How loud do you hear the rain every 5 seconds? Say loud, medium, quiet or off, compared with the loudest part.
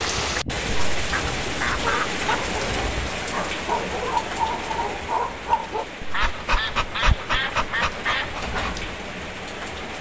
loud, medium.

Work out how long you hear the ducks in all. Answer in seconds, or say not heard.
4 s.